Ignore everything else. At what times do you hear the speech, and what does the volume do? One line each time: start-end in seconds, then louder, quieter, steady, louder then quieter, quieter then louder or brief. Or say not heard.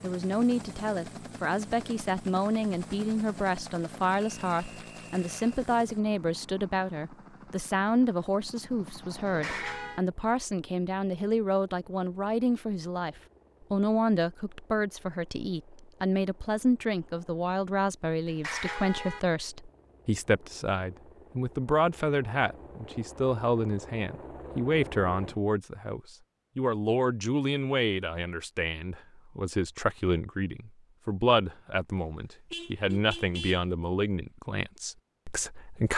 0.0-35.9 steady.